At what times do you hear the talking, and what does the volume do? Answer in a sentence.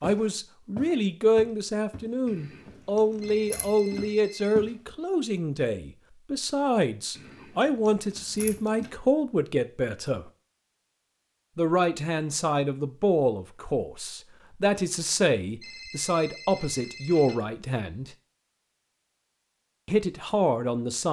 The talking can be heard from 0.0 to 10.3 s, at a steady volume; from 11.6 to 18.1 s, at a steady volume; and briefly from 19.9 to 21.0 s.